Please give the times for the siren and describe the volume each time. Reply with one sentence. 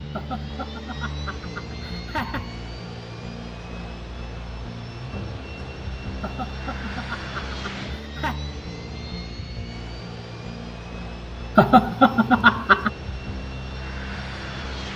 You can't hear the siren here.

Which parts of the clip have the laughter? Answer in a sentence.
You can hear the laughter from 0.1 to 2.5 s, from 6.2 to 8.4 s and from 11.6 to 12.9 s.